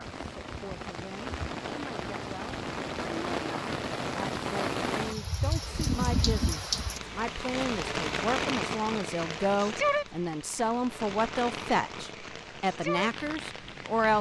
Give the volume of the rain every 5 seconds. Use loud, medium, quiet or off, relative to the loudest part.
loud, loud, medium.